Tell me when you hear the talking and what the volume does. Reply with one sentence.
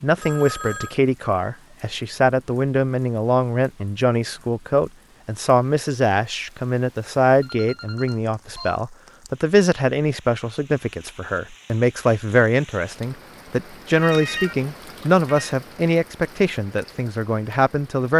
The talking can be heard from 0.0 to 18.1 s, at a steady volume.